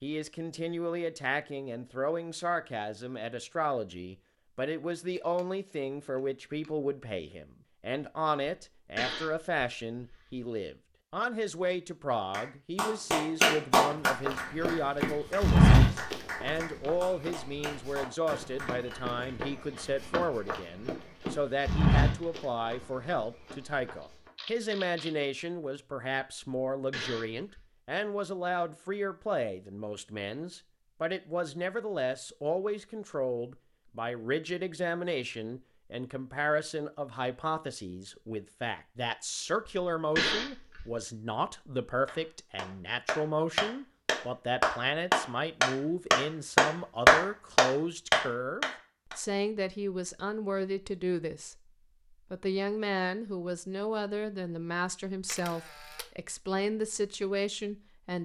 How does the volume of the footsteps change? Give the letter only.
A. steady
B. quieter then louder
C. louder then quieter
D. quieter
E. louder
B.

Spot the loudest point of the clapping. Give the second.
47 s.